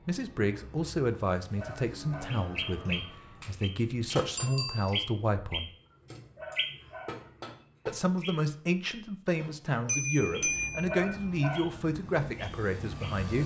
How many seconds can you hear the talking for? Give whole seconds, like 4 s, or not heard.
11 s.